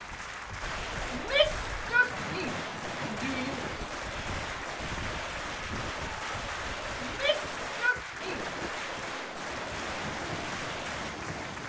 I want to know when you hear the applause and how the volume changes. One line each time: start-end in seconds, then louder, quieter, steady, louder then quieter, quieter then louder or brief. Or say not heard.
0.0-11.6 steady.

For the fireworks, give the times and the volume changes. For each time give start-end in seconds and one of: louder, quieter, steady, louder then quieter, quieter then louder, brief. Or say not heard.
0.6-11.2 steady.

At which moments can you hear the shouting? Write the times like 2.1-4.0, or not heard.
1.1-3.6, 7.0-8.6.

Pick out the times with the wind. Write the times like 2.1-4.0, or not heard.
0.0-11.6.